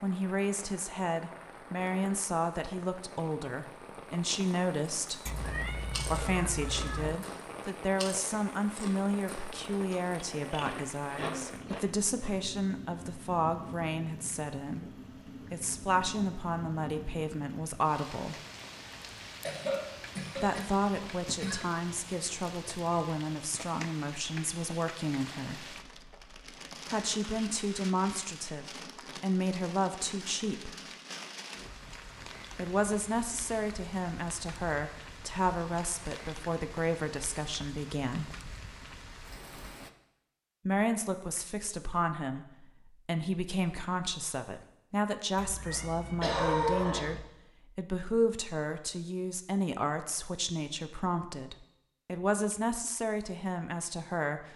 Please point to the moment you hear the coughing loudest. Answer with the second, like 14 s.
47 s.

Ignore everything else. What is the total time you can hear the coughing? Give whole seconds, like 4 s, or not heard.
4 s.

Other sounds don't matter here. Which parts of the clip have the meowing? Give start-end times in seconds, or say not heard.
5.2-7.2, 45.4-47.2.